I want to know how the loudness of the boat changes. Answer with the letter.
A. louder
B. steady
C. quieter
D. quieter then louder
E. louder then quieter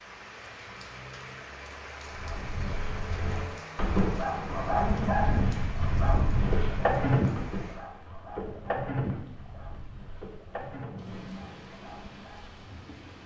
E.